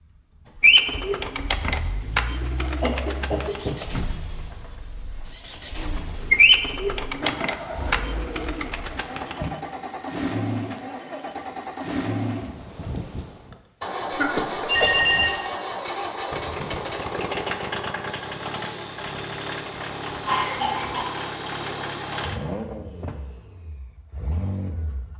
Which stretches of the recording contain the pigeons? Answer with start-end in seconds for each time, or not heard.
0.6-9.5.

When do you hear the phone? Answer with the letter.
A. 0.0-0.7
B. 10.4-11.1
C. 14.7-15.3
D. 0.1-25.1
C.